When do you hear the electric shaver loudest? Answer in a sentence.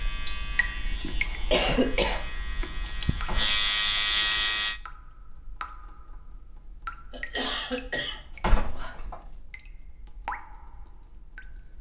The volume of the electric shaver peaks at 4 seconds.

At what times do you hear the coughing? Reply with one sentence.
You can hear the coughing from 1.0 to 2.6 s and from 7.1 to 8.2 s.